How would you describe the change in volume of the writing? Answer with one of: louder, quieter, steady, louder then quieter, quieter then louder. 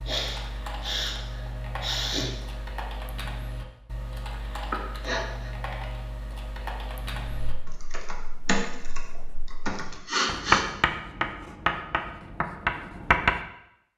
louder then quieter.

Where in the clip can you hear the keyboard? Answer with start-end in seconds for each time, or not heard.
0.0-10.0.